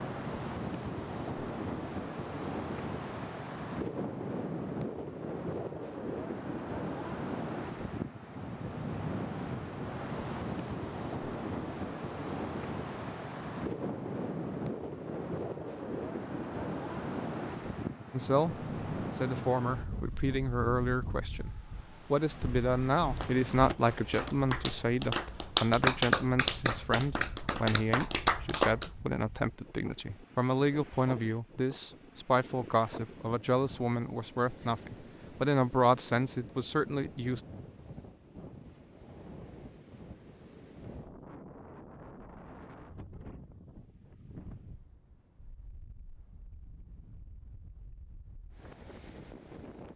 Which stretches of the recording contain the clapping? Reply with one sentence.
You can hear the clapping from 23.1 to 28.9 s.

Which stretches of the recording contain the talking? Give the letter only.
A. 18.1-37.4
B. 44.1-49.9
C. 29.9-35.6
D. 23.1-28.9
A.